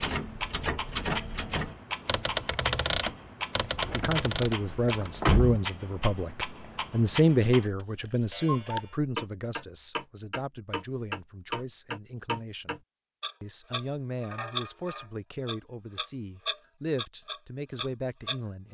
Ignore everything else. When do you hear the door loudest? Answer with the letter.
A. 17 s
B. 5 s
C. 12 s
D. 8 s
B.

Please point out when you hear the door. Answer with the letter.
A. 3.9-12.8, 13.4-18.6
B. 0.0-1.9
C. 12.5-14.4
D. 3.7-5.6
D.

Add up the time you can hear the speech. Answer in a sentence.
The speech can be heard for 14 seconds in total.